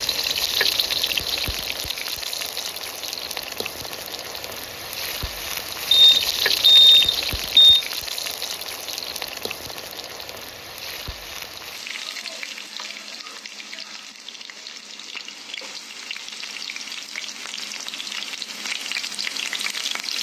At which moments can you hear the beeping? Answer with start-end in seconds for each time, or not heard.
5.9-7.8.